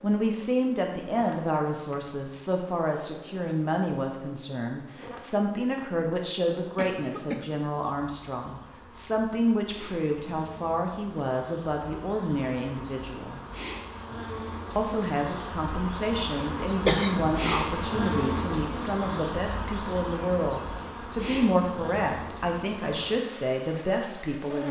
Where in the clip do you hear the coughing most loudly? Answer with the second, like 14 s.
17 s.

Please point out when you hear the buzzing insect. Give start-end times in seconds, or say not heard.
0.0-24.6.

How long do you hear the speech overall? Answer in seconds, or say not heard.
23 s.